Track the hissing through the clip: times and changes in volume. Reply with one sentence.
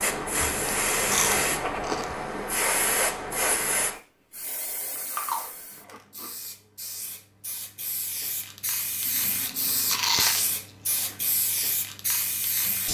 The hissing can be heard from 0.0 to 12.8 s, getting quieter then louder.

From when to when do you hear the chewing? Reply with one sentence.
You can hear the chewing from 0.4 to 2.1 s, from 5.0 to 6.3 s and from 9.1 to 11.2 s.